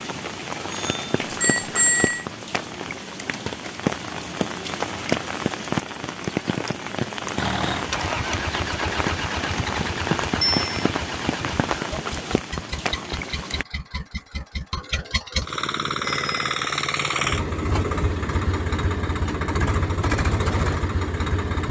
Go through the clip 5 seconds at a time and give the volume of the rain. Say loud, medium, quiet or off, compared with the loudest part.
loud, loud, loud, off, off.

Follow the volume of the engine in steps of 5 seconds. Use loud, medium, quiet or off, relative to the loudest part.
off, loud, medium, loud, loud.